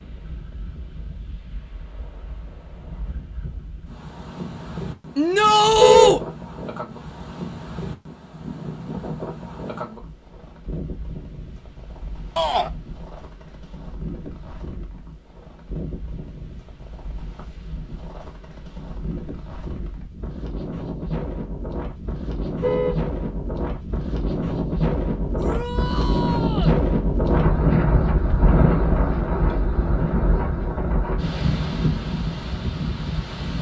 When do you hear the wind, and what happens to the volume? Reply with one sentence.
The wind can be heard from 0.0 to 33.5 s, getting louder.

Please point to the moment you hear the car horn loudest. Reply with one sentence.
The loudest moment of the car horn is at 6 seconds.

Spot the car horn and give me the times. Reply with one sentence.
You can hear the car horn from 5.7 to 6.2 s and from 22.6 to 23.1 s.